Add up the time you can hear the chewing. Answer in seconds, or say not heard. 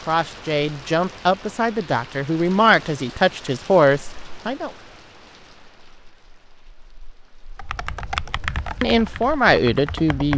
not heard.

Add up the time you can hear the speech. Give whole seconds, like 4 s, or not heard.
6 s.